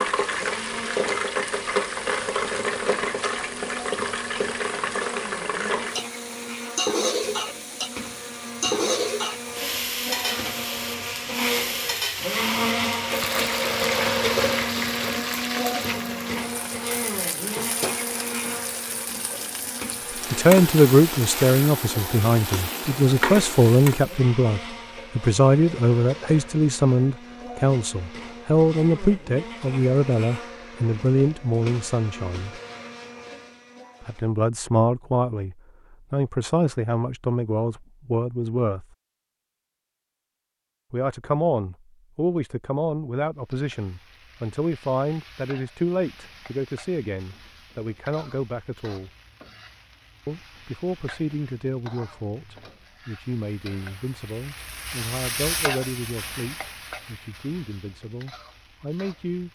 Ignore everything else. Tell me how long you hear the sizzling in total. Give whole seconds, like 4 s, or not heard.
40 s.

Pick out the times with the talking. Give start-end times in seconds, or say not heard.
20.3-32.6, 34.0-38.9, 40.9-49.1, 50.2-59.5.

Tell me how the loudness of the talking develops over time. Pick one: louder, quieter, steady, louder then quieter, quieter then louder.
quieter.